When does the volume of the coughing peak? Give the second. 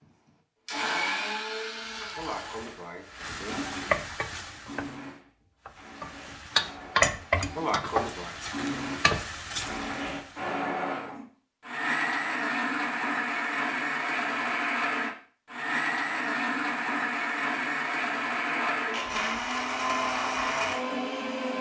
8 s.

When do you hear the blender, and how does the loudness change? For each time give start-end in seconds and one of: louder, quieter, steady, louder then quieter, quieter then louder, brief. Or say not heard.
0.0-21.5 quieter then louder.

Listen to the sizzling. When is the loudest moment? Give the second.
7 s.